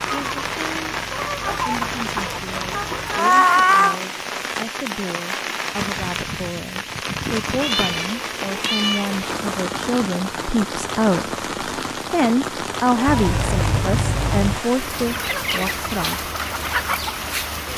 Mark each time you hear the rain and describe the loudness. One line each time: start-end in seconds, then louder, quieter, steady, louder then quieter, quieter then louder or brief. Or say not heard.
0.0-17.7 steady.